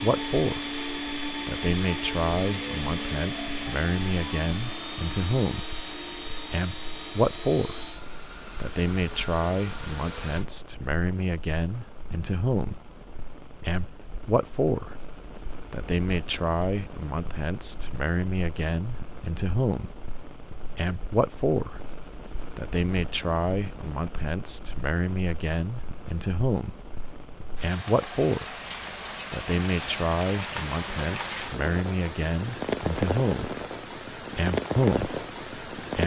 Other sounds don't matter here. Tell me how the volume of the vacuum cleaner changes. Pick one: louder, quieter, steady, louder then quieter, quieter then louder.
quieter.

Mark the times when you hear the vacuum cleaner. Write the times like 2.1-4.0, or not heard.
0.0-10.4.